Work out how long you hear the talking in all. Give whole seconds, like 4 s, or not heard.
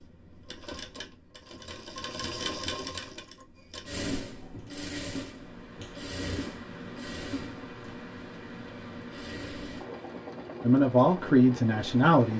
2 s.